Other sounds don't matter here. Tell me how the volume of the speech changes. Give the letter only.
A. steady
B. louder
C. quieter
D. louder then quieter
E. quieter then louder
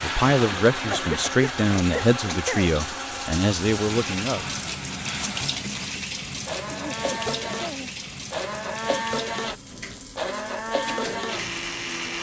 A.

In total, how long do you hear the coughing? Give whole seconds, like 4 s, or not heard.
3 s.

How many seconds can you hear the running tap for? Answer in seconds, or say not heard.
12 s.